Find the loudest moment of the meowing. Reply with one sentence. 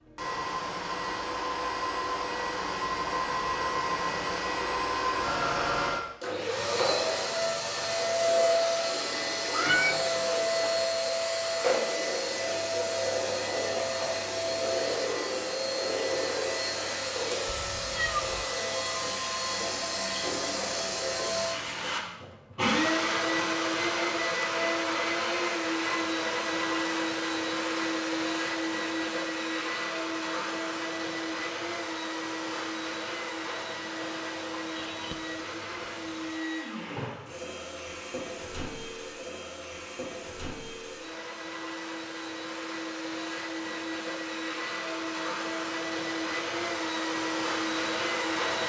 The volume of the meowing peaks at 10 seconds.